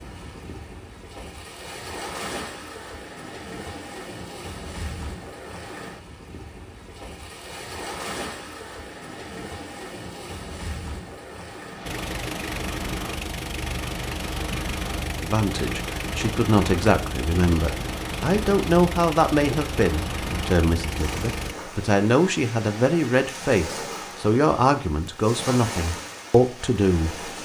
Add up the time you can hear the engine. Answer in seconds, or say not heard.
10 s.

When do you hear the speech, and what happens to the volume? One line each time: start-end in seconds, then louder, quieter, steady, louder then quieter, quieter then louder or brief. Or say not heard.
15.2-27.4 steady.